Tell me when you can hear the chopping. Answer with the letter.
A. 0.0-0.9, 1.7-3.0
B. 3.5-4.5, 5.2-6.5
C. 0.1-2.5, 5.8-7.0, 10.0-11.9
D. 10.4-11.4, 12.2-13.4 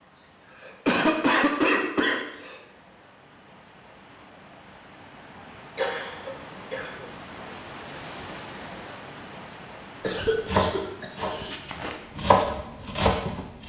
D.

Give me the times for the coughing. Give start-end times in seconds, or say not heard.
0.1-2.5, 5.8-7.0, 10.0-11.9.